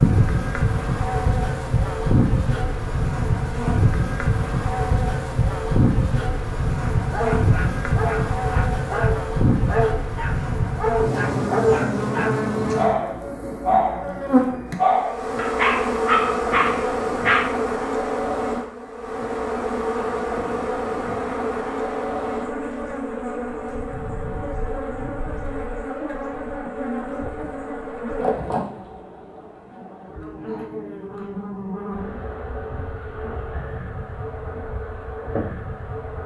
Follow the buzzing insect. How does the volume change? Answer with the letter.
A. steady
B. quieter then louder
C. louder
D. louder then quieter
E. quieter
E.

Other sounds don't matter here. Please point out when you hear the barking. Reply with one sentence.
You can hear the barking from 7.0 to 17.5 s.